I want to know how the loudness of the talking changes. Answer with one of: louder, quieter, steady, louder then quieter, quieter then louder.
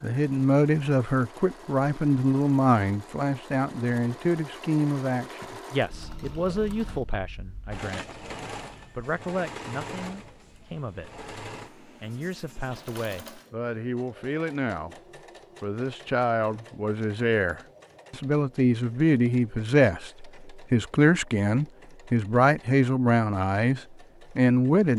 quieter then louder.